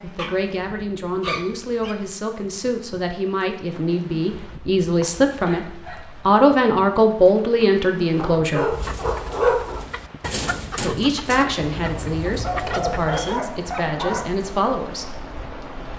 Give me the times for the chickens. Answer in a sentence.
You can hear the chickens from 8.7 to 13.4 s.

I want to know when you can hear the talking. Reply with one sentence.
You can hear the talking from 0.0 to 5.7 s, from 6.2 to 8.8 s and from 10.8 to 15.2 s.